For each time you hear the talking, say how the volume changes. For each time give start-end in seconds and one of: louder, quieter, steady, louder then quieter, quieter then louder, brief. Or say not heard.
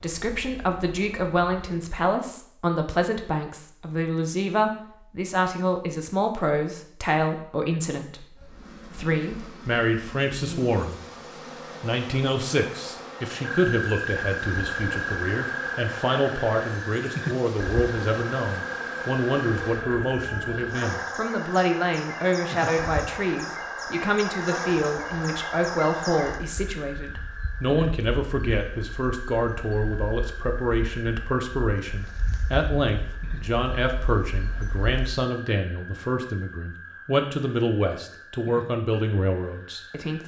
0.0-11.0 steady
11.8-40.2 steady.